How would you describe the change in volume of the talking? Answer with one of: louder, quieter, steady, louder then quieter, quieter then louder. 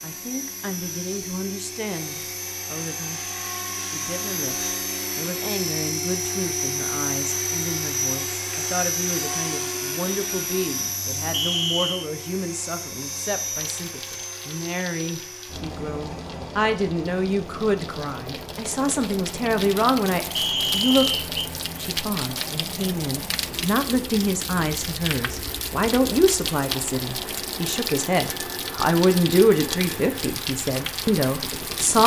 louder.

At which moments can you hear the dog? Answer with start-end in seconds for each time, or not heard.
not heard.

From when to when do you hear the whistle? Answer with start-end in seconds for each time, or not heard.
11.3-12.1, 20.4-21.5.